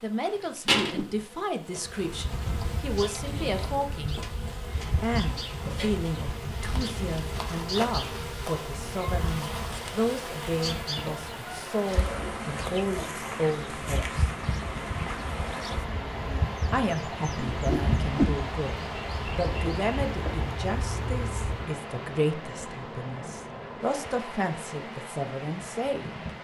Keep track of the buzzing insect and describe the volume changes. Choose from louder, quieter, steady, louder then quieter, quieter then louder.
quieter.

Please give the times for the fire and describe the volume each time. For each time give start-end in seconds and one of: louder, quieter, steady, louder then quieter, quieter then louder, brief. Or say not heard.
not heard.